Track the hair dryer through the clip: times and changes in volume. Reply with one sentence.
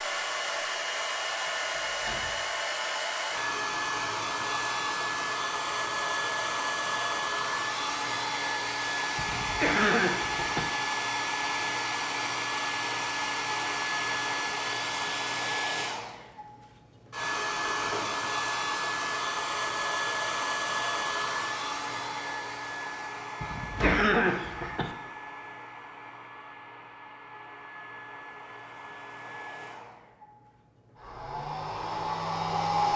The hair dryer can be heard from 0.0 to 32.9 s, getting quieter.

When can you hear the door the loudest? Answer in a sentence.
The loudest moment of the door is at 24 seconds.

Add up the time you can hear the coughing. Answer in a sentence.
The coughing can be heard for 3 seconds in total.